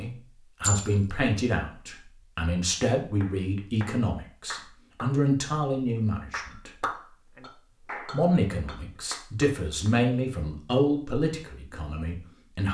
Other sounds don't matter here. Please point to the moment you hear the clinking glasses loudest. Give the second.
1 s.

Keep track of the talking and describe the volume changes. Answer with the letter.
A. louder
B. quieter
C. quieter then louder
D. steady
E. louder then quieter
D.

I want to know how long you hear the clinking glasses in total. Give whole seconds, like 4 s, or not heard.
3 s.